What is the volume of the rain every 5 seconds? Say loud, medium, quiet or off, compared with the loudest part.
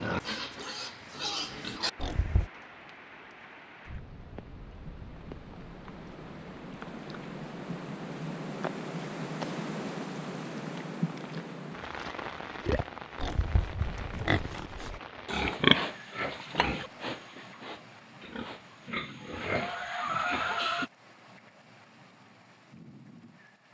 medium, loud, loud, medium, quiet.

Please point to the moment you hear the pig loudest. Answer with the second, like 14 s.
16 s.